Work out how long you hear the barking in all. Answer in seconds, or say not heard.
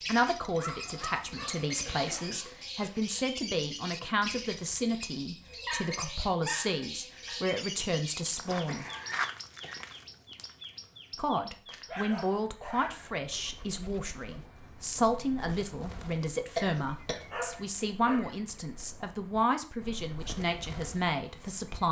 6 s.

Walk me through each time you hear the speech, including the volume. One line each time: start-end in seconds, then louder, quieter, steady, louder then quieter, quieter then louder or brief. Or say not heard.
0.0-8.8 steady
11.2-21.8 steady.